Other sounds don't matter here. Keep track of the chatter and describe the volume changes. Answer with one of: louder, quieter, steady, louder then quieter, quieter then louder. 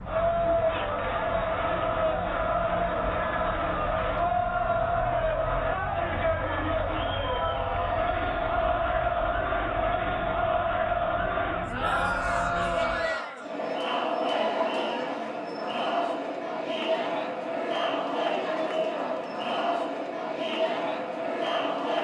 steady.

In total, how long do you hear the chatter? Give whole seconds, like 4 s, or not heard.
22 s.